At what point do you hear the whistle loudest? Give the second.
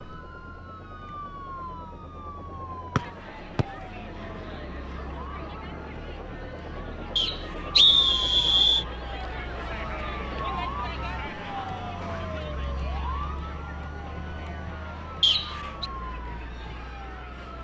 8 s.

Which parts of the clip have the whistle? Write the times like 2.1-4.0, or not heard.
3.0-3.6, 7.2-8.8, 15.2-15.8.